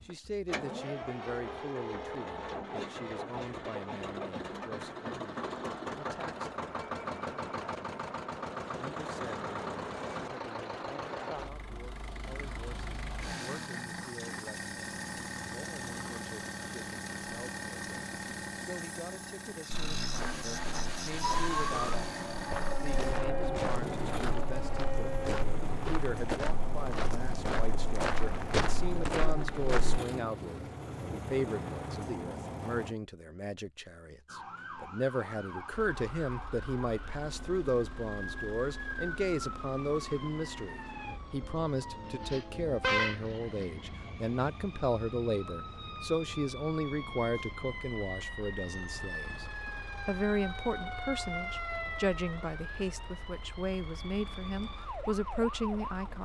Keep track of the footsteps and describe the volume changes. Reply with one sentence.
The loudness of the footsteps goes up.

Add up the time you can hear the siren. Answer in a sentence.
You can hear the siren for 26 seconds altogether.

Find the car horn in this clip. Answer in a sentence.
The car horn can be heard from 42.2 to 43.6 s.